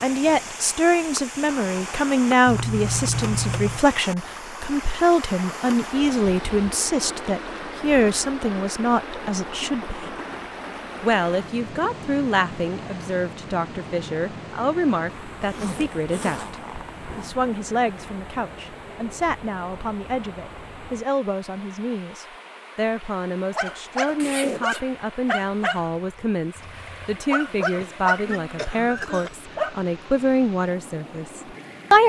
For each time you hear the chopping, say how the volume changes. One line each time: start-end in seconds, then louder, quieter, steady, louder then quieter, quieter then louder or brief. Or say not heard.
not heard.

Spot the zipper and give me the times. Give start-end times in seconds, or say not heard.
2.5-3.9, 15.4-17.4, 24.2-24.8.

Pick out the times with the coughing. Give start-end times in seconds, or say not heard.
27.8-29.3.